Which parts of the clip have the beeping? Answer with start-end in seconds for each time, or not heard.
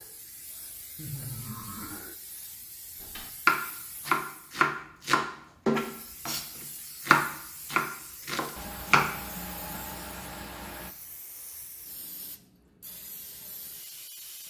not heard.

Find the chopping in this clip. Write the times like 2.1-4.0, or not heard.
3.1-9.1.